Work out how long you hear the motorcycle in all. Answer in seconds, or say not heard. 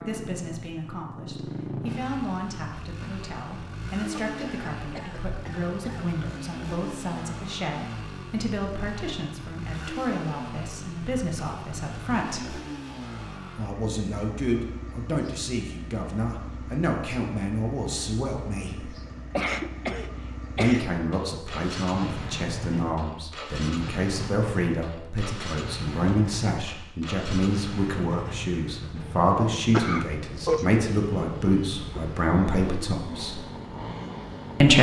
35 s.